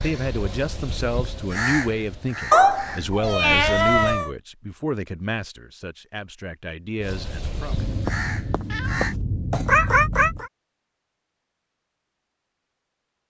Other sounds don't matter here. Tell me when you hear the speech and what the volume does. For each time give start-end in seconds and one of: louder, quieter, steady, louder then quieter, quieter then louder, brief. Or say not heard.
0.0-7.8 quieter.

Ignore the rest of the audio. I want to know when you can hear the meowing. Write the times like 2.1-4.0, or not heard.
2.5-4.3, 7.8-10.5.